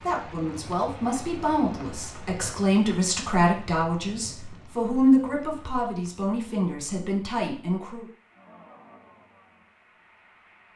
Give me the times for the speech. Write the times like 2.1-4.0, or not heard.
0.0-8.1.